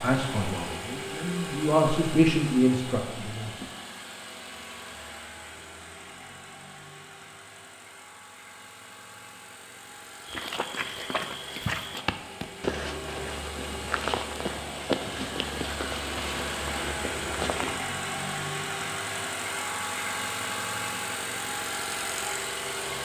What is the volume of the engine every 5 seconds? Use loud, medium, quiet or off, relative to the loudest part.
medium, quiet, medium, loud, loud.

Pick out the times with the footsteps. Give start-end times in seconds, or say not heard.
10.2-17.8.